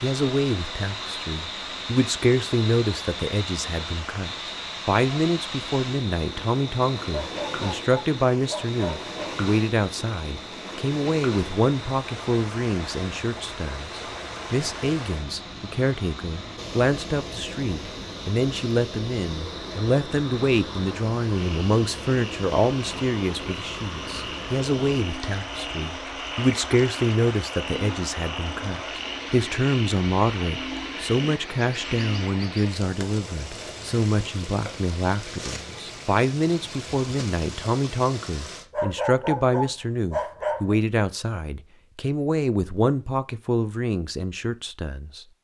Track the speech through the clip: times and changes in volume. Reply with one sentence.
The speech can be heard from 0.0 to 45.2 s, at a steady volume.